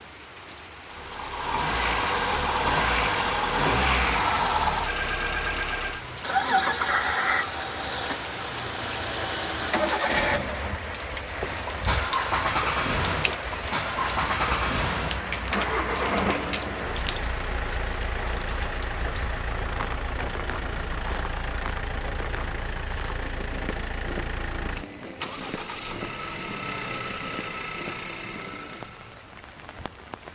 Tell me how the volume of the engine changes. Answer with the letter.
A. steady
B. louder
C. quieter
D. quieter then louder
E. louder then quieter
C.